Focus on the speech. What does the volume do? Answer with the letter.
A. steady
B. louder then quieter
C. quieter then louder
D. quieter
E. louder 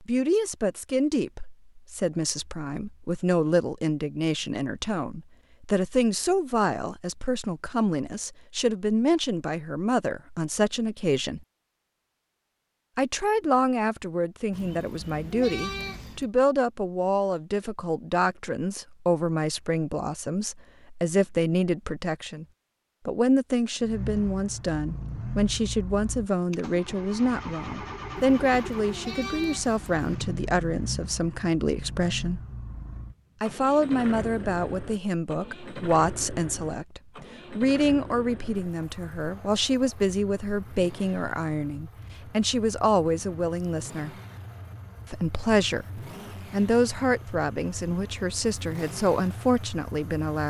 A.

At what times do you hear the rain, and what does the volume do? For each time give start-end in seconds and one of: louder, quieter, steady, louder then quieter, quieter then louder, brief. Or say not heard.
not heard.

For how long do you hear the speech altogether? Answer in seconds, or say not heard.
46 s.